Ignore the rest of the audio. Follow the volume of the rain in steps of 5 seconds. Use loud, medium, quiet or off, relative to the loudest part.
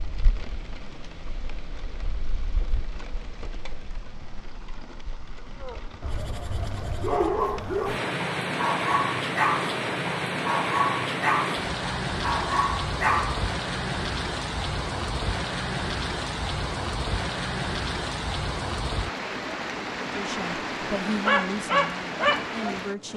quiet, medium, loud, loud, loud.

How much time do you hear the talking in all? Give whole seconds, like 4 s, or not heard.
3 s.